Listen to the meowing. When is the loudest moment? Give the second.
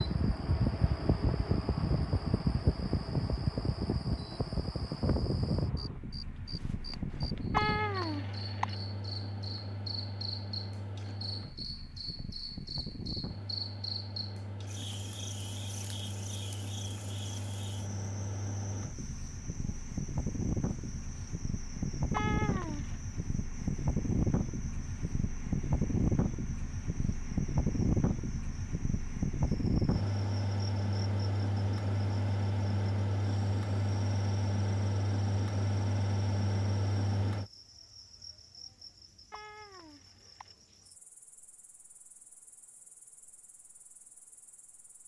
8 s.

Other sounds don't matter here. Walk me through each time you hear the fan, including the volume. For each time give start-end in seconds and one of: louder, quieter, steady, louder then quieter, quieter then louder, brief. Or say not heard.
0.0-37.5 quieter then louder.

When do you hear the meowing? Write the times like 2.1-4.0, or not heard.
7.5-8.8, 22.1-22.9, 39.3-40.5.